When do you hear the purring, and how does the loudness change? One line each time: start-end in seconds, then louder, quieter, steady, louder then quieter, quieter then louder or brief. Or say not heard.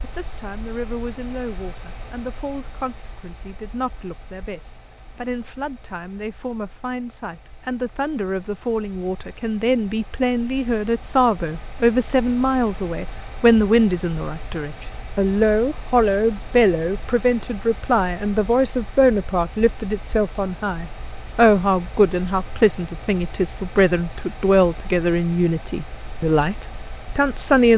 not heard.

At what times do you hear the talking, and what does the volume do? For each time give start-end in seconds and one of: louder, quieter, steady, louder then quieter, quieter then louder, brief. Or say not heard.
0.0-27.7 louder.